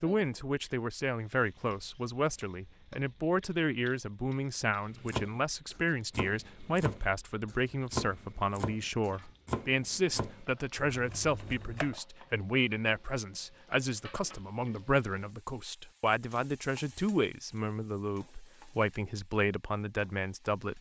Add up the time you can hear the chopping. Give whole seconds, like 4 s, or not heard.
7 s.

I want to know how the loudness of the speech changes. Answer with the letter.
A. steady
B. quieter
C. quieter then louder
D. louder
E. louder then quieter
A.